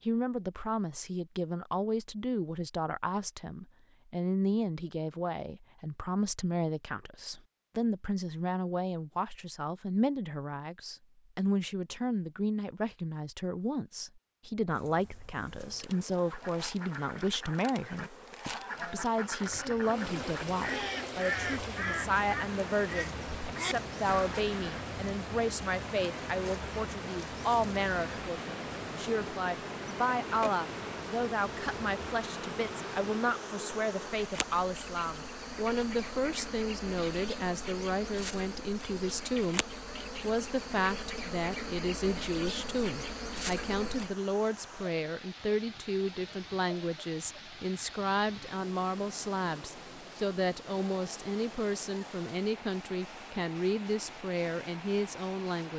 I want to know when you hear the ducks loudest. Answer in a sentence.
The loudest moment of the ducks is at 21 seconds.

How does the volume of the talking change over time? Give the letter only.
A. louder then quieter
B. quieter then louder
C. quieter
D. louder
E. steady
E.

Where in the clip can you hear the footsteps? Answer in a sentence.
The footsteps can't be heard in this clip.